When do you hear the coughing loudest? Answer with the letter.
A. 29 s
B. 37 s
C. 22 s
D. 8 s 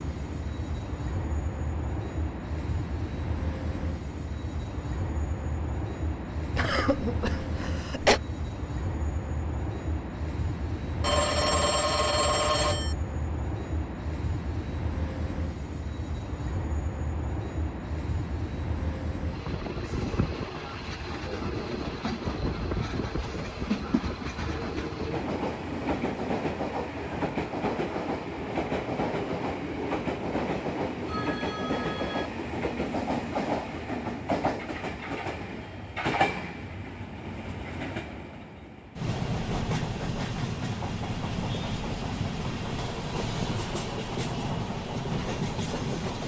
D.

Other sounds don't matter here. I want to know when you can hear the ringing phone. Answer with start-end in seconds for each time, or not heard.
11.0-12.9, 31.1-32.3.